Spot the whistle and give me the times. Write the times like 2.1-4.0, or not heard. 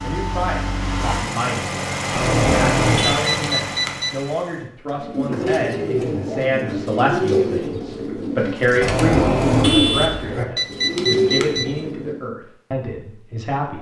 not heard.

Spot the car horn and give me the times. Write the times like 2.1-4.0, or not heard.
2.1-3.2, 8.8-10.4.